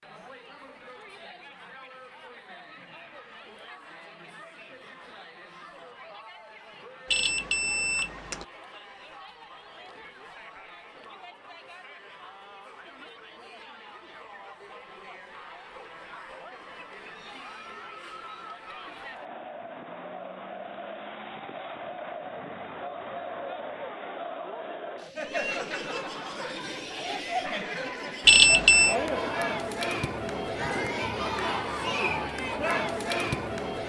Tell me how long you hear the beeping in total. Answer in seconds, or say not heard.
2 s.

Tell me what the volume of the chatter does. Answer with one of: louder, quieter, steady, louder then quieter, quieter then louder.
louder.